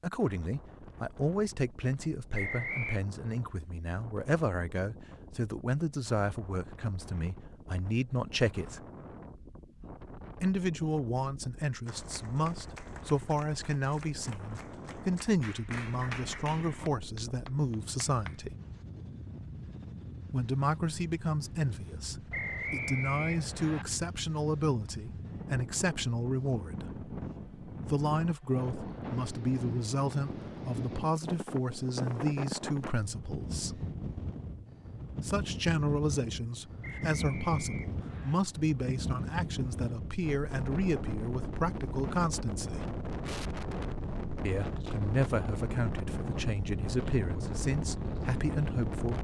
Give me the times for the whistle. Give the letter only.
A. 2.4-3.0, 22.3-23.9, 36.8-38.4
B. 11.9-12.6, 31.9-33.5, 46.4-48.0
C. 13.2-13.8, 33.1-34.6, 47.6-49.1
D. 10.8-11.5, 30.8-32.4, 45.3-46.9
A.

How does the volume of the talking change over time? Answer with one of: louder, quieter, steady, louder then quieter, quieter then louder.
steady.